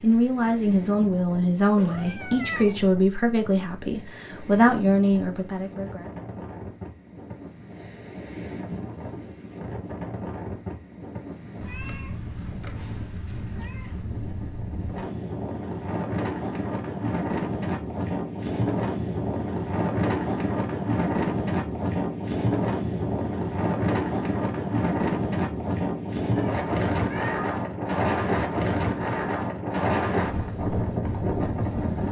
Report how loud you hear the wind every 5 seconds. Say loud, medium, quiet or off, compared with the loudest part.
quiet, quiet, medium, loud, loud, loud, loud.